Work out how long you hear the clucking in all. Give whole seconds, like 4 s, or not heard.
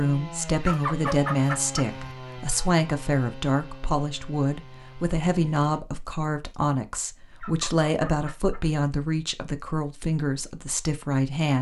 3 s.